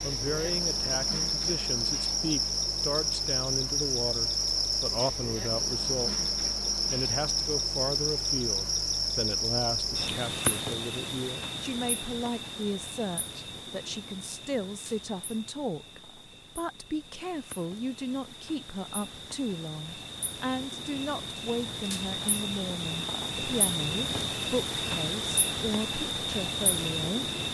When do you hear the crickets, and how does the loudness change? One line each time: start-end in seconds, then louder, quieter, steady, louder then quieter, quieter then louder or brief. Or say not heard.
0.0-27.4 quieter then louder.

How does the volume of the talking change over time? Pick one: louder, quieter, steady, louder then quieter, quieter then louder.
steady.